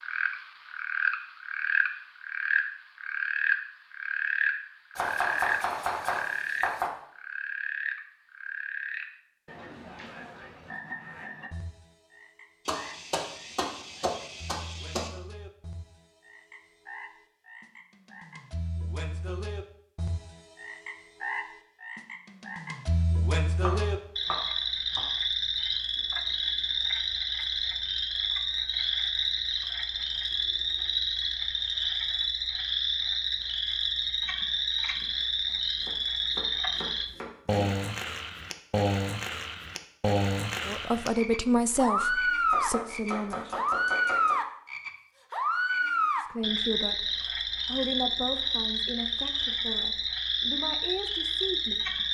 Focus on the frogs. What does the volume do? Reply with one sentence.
The loudness of the frogs goes down, then up.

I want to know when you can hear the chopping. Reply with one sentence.
The chopping can be heard from 5.0 to 6.9 s, from 12.7 to 15.1 s, from 23.6 to 25.1 s, from 35.0 to 37.7 s and from 42.5 to 44.4 s.